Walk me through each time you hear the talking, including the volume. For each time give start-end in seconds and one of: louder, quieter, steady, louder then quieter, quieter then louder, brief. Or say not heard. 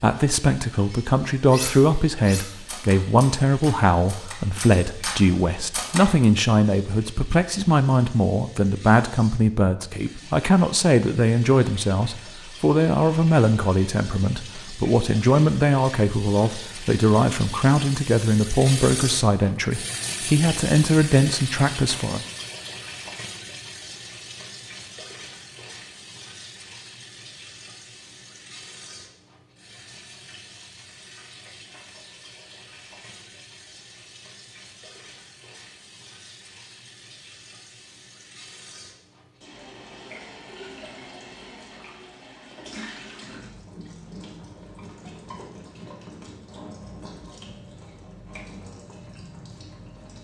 0.0-22.2 steady.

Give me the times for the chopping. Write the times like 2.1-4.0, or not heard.
not heard.